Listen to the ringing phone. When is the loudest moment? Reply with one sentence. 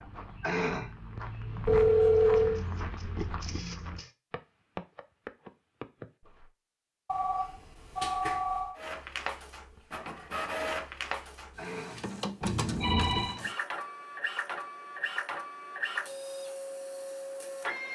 The loudest moment of the ringing phone is at 2 seconds.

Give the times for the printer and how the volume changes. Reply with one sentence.
The printer can be heard briefly from 2.4 to 4.1 s; and from 8.8 to 17.9 s, at a steady volume.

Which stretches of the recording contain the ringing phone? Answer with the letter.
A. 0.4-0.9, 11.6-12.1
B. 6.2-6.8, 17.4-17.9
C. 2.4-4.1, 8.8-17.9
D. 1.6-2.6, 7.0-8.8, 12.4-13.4
D.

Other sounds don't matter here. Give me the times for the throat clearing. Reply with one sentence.
You can hear the throat clearing from 0.4 to 0.9 s and from 11.6 to 12.1 s.